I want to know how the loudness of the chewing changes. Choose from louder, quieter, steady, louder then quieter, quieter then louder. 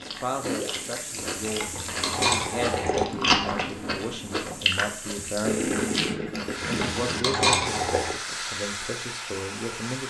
louder then quieter.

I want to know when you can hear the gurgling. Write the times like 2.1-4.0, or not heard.
0.5-1.0, 5.4-7.4.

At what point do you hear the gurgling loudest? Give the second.
6 s.